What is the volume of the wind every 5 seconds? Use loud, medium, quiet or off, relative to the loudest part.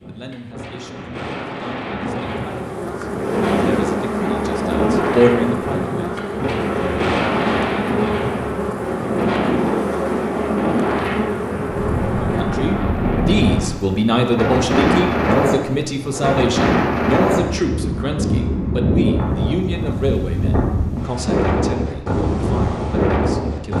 medium, loud, loud, loud, loud.